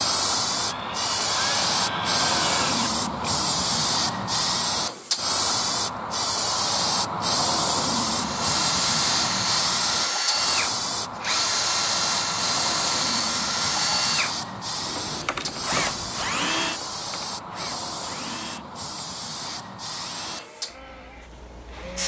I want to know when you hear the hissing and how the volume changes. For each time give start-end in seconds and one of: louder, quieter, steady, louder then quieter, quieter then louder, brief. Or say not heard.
0.0-22.0 quieter.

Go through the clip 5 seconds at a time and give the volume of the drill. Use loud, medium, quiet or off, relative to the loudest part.
medium, loud, loud, medium, quiet.